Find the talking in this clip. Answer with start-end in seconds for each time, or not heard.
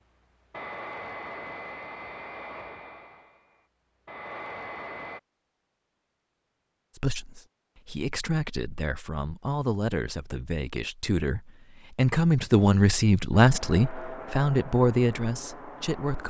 7.0-16.2.